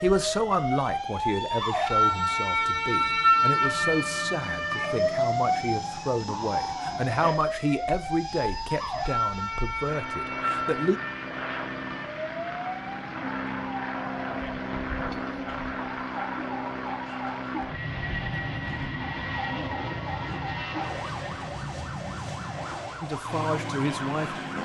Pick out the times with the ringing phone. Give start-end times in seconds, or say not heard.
not heard.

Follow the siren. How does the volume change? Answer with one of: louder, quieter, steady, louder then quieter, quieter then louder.
quieter.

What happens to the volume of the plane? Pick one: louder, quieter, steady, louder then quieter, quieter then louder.
louder.